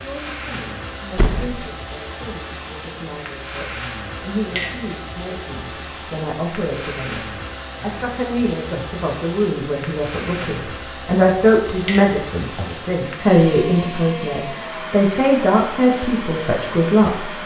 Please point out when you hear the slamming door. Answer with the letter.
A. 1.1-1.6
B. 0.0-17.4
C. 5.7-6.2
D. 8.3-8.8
A.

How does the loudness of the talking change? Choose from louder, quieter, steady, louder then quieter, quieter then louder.
louder.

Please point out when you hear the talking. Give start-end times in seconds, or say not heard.
0.0-17.4.